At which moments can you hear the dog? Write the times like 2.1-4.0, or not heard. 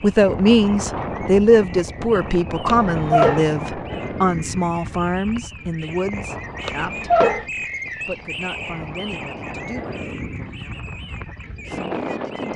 2.9-3.5, 6.7-7.5.